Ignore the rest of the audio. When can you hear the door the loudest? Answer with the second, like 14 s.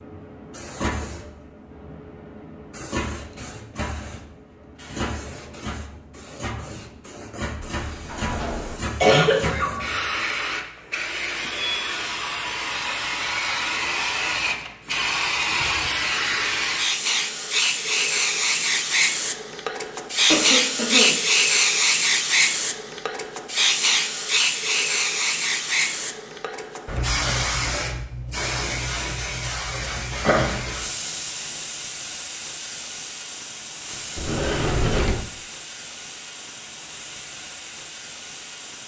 35 s.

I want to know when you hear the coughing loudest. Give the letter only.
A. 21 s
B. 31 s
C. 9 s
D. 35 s
C.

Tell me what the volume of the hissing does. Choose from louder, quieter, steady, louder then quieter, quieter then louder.
louder then quieter.